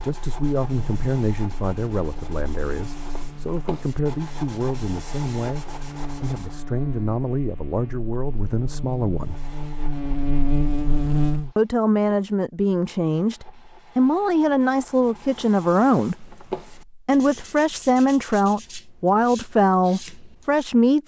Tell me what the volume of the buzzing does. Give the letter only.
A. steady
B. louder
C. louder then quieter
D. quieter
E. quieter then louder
B.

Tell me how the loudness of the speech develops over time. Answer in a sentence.
The loudness of the speech goes up.